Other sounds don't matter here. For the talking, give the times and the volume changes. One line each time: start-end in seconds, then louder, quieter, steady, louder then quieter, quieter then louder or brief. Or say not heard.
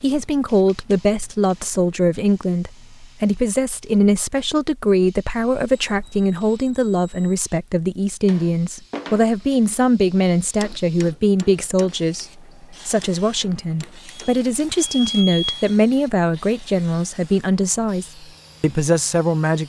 0.0-19.6 steady.